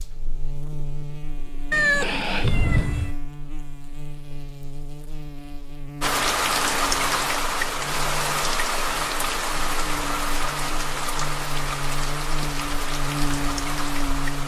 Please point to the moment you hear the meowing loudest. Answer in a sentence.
The loudest moment of the meowing is at 2 seconds.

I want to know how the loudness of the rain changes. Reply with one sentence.
The loudness of the rain goes down.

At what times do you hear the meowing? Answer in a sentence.
The meowing can be heard from 1.7 to 3.1 s.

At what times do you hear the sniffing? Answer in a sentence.
You can hear the sniffing from 1.9 to 2.5 s.